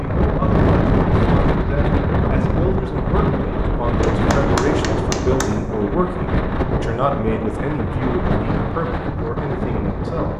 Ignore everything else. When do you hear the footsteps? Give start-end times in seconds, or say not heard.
not heard.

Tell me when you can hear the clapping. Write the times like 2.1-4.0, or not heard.
4.0-5.5.